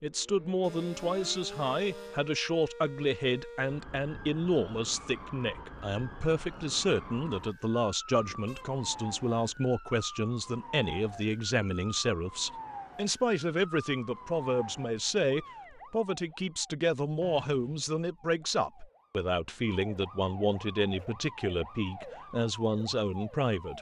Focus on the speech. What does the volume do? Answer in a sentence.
The volume of the speech stays about the same.